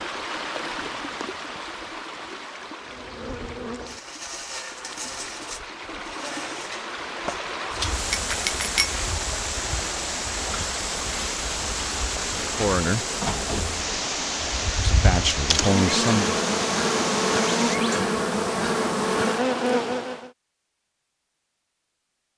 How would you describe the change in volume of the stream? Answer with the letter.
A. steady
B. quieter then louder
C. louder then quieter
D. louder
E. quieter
D.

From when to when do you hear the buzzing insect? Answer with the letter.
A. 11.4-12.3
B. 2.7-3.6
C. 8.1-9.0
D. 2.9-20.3
D.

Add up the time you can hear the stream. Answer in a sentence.
You can hear the stream for 18 seconds altogether.